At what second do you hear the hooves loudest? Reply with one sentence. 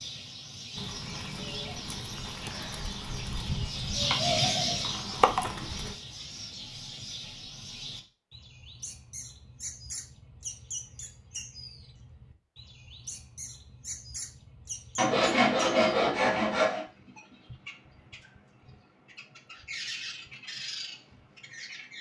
The volume of the hooves peaks at 5 seconds.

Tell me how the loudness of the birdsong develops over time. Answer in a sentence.
The volume of the birdsong goes up, then down.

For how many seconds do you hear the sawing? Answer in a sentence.
The sawing can be heard for 2 seconds in total.